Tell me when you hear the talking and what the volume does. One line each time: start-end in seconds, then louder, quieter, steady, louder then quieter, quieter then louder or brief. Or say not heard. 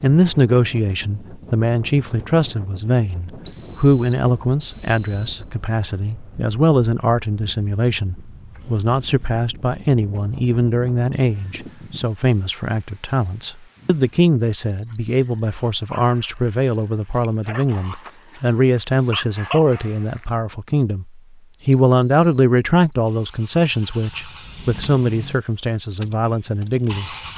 0.0-27.1 steady.